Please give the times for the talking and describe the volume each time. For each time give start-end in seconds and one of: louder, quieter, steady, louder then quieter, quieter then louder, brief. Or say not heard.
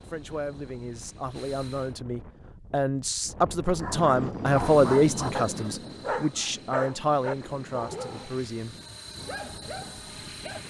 0.1-8.8 louder then quieter.